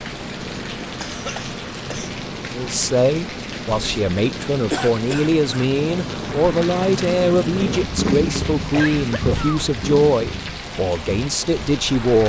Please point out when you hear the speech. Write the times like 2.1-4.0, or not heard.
2.5-12.2.